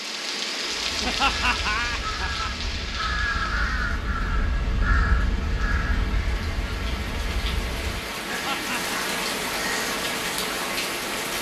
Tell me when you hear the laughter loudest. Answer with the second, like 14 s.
1 s.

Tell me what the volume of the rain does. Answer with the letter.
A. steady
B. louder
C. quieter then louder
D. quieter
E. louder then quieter
C.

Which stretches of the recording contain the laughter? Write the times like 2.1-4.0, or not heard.
1.0-2.7, 8.2-9.0.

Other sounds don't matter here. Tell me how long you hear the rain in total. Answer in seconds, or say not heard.
11 s.